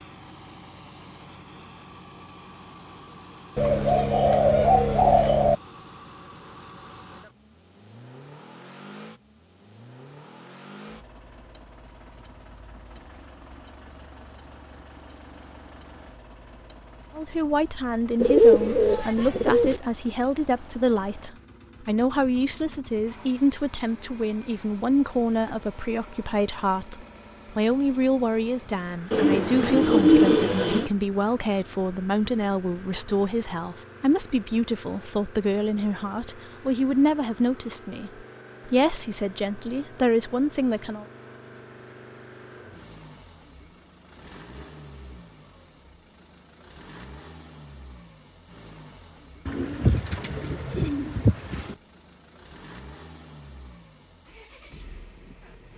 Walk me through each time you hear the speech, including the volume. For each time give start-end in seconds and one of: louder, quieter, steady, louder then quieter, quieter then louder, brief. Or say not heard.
17.1-41.0 steady.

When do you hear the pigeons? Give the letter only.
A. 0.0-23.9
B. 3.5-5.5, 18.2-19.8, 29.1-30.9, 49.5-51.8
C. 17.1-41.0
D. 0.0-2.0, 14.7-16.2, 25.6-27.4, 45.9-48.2
B.